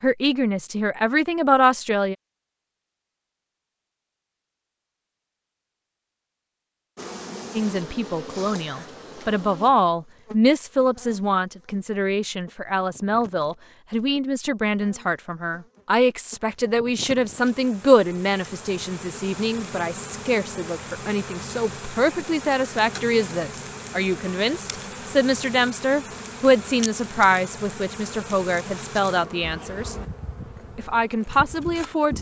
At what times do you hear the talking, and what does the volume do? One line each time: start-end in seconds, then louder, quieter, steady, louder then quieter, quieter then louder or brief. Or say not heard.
0.0-2.1 brief
7.5-29.9 steady
30.8-32.1 brief.